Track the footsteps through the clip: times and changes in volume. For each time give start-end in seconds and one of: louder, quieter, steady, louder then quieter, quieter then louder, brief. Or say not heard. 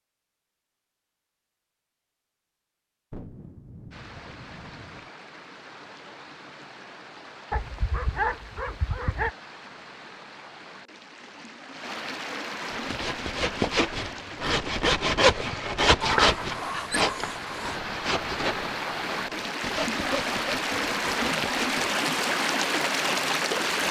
not heard.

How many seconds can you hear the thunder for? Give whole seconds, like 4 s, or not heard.
2 s.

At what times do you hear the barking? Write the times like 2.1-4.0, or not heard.
7.5-9.3, 16.0-17.8.